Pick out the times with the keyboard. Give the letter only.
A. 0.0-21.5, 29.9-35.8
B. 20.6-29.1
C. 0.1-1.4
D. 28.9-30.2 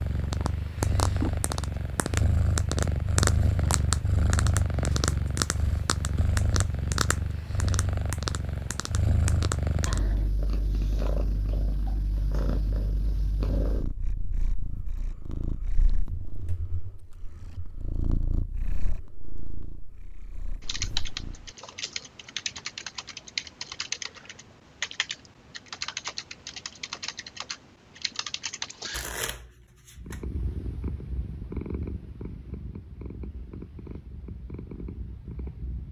B.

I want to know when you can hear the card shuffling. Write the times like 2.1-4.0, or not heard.
28.9-30.2.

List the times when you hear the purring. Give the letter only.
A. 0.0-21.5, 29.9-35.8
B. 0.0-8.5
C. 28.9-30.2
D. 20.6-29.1
A.